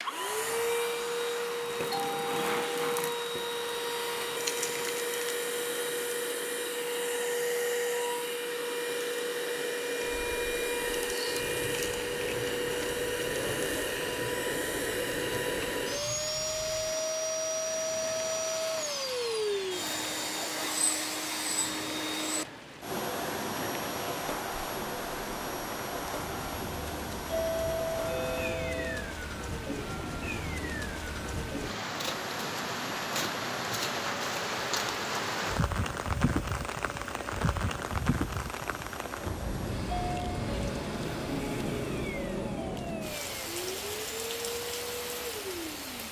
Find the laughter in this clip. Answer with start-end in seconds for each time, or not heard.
not heard.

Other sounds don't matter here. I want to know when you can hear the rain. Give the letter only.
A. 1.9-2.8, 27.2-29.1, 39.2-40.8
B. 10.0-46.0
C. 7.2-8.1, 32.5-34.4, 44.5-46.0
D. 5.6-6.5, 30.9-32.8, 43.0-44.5
B.